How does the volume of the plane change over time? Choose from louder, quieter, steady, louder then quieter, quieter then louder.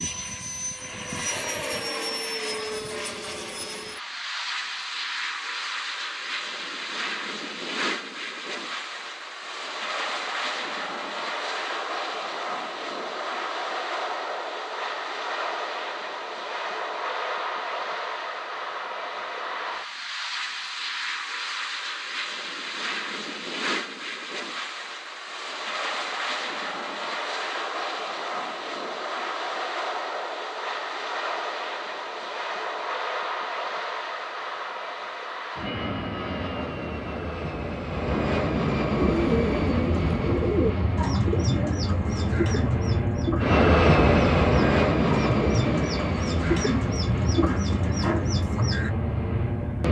louder.